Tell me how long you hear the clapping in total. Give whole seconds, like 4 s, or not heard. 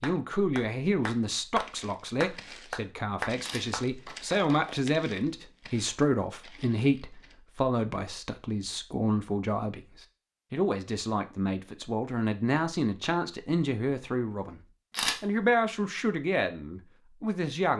5 s.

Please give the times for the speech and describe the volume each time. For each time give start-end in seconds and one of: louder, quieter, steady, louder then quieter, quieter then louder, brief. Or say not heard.
0.0-14.6 steady
15.2-17.7 brief.